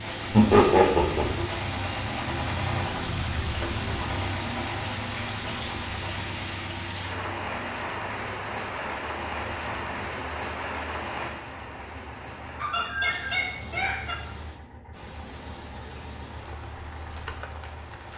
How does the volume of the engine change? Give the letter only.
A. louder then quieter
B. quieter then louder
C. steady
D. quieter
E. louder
D.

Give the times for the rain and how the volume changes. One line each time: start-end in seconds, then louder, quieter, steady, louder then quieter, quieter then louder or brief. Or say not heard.
0.0-18.1 quieter.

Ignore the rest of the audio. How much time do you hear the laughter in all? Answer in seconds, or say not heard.
3 s.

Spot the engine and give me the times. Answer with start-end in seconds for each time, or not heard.
0.0-18.1.